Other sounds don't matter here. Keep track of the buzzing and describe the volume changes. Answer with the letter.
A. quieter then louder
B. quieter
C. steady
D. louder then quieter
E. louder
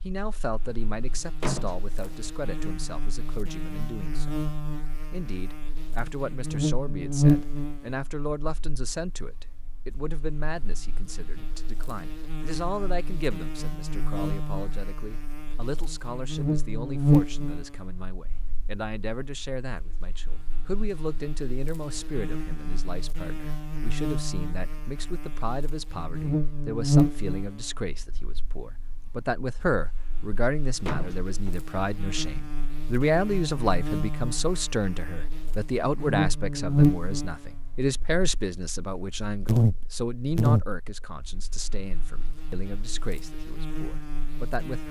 A.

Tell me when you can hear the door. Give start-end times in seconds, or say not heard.
1.4-2.1, 30.9-31.6.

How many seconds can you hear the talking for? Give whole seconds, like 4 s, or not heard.
45 s.